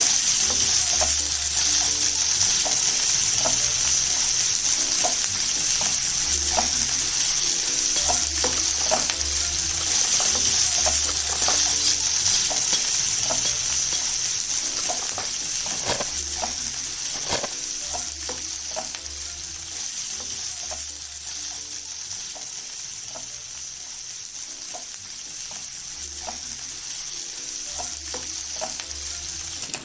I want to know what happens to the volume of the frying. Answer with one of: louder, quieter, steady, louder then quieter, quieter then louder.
quieter.